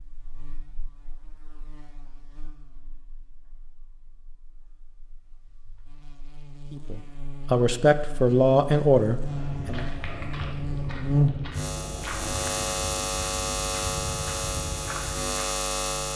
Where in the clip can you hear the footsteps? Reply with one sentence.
You can hear the footsteps from 9.2 to 15.5 s.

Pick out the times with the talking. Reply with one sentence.
The talking can be heard from 6.7 to 9.8 s.